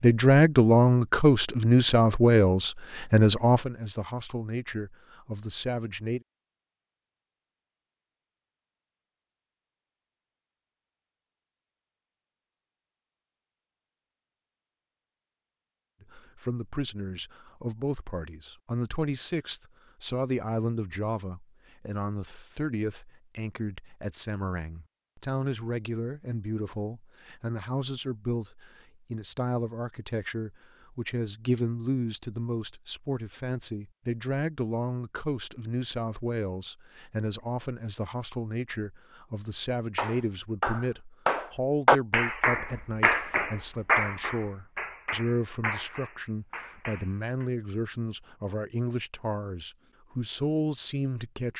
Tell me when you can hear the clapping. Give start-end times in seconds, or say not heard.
40.0-47.5.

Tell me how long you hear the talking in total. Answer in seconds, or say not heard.
42 s.